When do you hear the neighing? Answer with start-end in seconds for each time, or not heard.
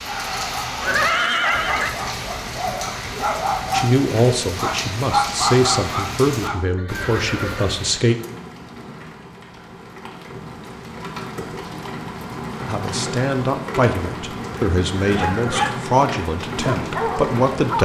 0.8-1.9, 6.8-7.8, 15.1-15.8.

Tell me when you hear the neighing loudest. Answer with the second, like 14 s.
1 s.